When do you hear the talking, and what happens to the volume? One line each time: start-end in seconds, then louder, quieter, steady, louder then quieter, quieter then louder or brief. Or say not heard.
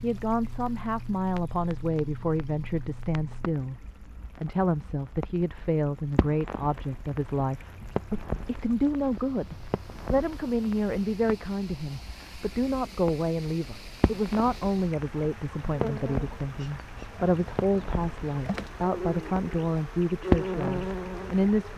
0.0-21.7 steady.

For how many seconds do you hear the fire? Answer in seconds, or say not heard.
22 s.